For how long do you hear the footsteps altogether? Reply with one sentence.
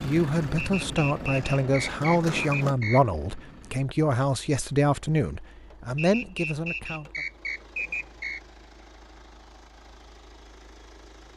You can't hear the footsteps here.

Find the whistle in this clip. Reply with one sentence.
The whistle can be heard from 0.6 to 3.0 s and from 6.0 to 8.4 s.